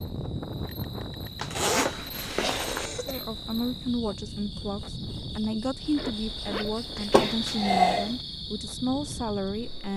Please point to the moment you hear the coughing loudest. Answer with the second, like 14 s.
8 s.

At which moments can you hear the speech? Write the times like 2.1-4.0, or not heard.
2.9-9.9.